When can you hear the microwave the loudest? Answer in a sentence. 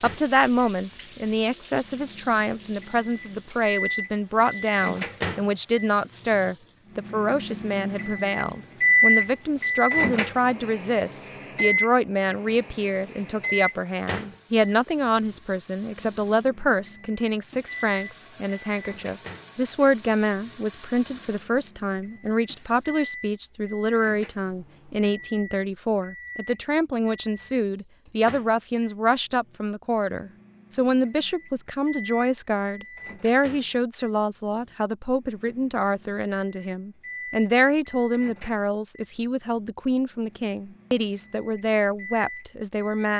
The volume of the microwave peaks at 9 seconds.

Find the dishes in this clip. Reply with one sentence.
The dishes can't be heard in this clip.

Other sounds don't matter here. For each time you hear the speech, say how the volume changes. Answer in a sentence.
The speech can be heard from 0.0 to 43.1 s, at a steady volume.